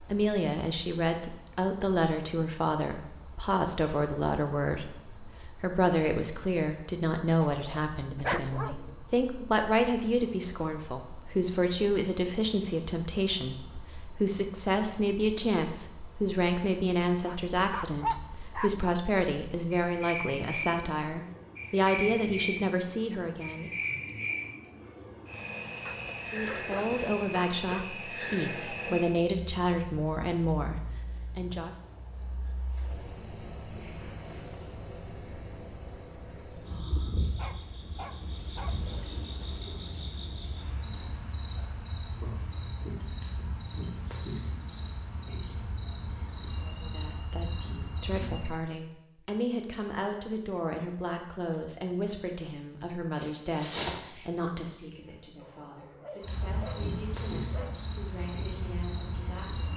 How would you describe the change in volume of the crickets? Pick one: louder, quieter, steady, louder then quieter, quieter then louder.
louder.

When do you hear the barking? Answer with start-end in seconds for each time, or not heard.
7.4-9.0, 17.2-19.0, 25.9-27.9, 37.4-38.8, 55.4-57.8.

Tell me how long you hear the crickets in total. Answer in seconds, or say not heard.
60 s.